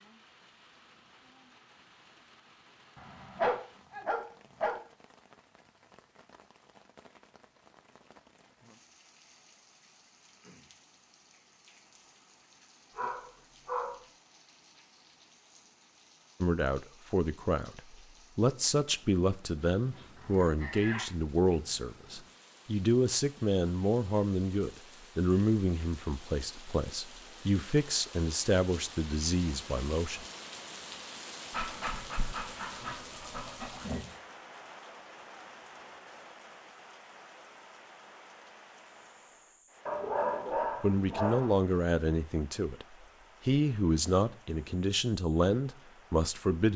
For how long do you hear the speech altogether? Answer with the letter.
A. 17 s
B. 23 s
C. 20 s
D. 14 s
C.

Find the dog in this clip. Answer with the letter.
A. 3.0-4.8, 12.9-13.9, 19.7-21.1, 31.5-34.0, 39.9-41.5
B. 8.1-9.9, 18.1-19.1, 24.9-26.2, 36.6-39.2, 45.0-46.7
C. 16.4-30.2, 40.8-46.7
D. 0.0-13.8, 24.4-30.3
A.